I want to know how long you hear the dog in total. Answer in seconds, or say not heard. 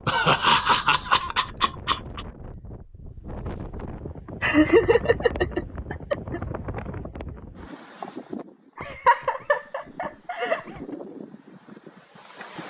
not heard.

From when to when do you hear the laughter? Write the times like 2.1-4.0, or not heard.
0.1-2.2, 4.4-6.4, 8.8-10.8.